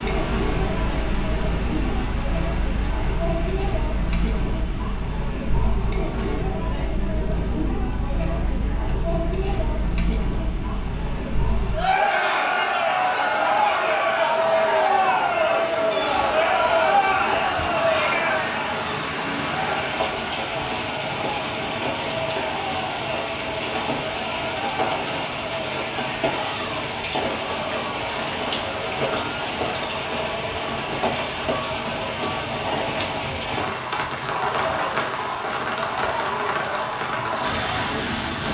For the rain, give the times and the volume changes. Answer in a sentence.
You can hear the rain from 0.0 to 38.4 s, getting louder.